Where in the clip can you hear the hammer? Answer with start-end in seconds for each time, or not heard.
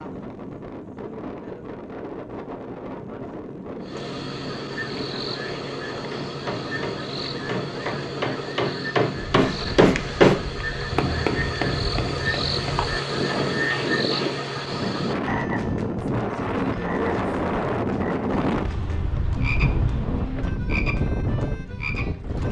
6.1-14.4.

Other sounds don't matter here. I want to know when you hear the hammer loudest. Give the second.
10 s.